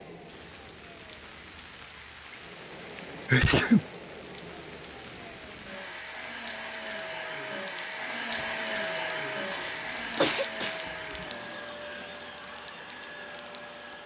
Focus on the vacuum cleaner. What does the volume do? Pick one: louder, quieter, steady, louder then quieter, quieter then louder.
louder then quieter.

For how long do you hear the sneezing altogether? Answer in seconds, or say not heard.
2 s.